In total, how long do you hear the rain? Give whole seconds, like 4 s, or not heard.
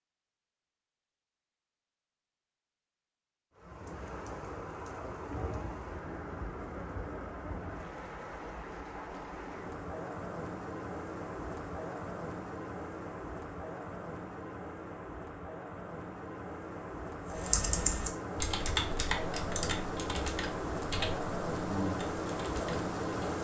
20 s.